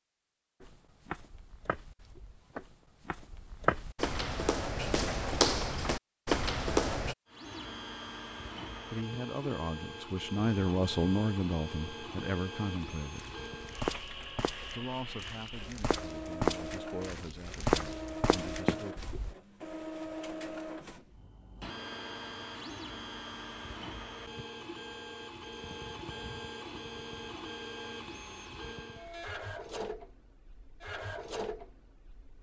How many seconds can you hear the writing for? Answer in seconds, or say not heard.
not heard.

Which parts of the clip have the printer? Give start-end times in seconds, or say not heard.
7.2-32.3.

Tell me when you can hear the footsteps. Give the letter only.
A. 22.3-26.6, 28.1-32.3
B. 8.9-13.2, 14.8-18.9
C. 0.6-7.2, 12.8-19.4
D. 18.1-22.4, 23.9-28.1
C.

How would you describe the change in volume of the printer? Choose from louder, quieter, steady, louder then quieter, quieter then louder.
steady.